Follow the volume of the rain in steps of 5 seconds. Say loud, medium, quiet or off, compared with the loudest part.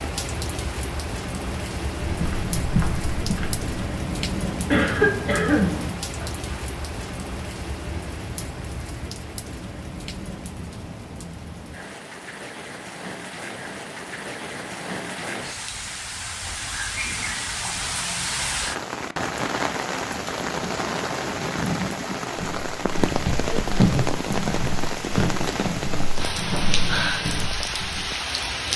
loud, medium, medium, loud, loud, loud.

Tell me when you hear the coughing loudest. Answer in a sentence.
The volume of the coughing peaks at 5 seconds.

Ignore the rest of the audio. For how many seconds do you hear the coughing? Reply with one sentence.
The coughing can be heard for 2 seconds in total.